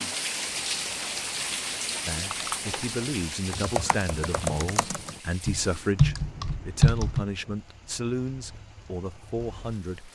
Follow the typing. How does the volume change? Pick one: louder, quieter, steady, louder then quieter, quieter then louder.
louder.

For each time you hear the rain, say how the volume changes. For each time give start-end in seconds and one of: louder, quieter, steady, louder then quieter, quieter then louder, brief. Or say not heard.
0.0-10.1 quieter.